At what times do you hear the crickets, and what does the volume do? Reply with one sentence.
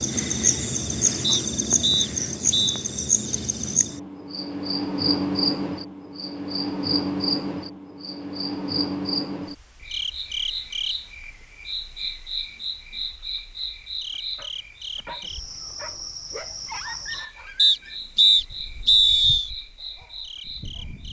The crickets can be heard from 0.0 to 21.0 s, getting quieter.